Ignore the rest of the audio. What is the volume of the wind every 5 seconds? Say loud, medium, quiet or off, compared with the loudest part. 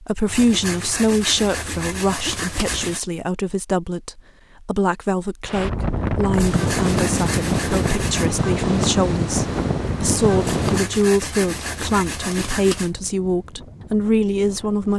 off, loud, medium.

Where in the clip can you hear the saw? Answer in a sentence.
The saw can be heard from 0.2 to 3.0 s, from 6.3 to 8.3 s and from 10.4 to 12.9 s.